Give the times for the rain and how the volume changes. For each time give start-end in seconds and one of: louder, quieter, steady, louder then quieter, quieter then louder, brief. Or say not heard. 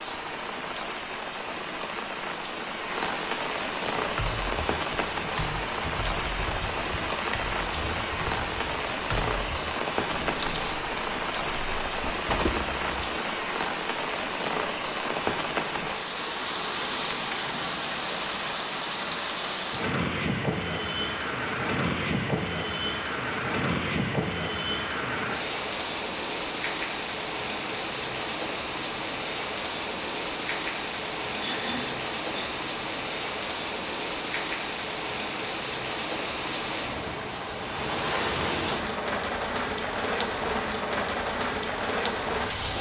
0.0-42.7 steady.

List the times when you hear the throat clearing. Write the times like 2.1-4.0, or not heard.
31.4-32.5.